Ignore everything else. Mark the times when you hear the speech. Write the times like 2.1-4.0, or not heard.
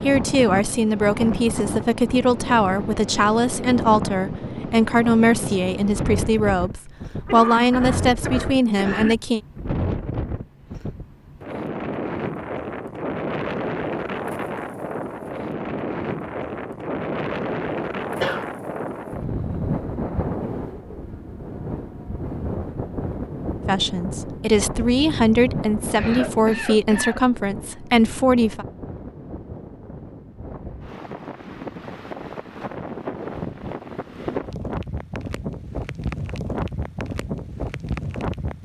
0.0-9.4, 23.6-28.6.